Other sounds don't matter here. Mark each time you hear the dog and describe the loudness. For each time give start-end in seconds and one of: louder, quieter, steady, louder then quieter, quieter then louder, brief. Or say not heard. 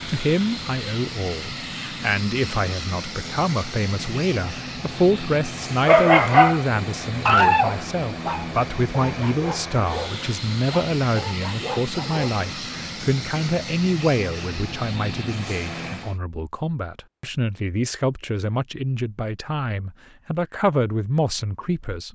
5.8-12.4 quieter.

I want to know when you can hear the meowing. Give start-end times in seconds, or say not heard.
not heard.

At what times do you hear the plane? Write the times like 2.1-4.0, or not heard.
0.0-16.2.